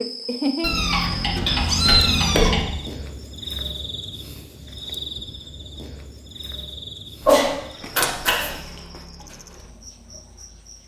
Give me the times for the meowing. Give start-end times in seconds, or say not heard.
0.6-2.6, 7.2-8.6.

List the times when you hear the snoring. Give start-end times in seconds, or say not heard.
not heard.